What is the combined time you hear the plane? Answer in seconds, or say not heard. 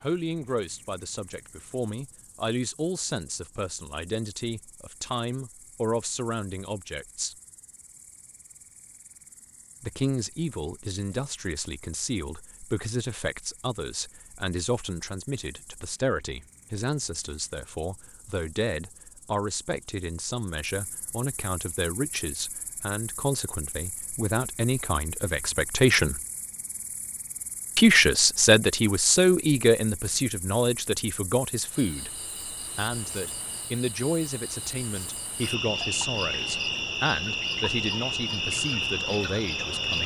not heard.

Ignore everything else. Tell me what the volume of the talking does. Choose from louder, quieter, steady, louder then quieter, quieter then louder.
louder then quieter.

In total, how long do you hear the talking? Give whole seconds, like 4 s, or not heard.
36 s.